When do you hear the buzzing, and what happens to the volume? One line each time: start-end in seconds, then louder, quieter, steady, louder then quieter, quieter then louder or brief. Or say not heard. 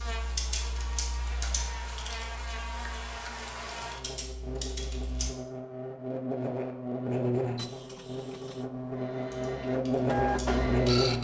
0.0-11.1 louder.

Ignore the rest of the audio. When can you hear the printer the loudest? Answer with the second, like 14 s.
11 s.